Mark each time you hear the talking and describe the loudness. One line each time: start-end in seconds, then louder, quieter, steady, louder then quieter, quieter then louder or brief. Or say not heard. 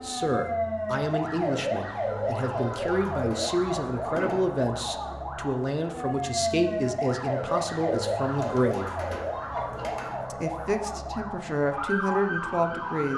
0.0-8.9 steady
10.3-13.1 brief.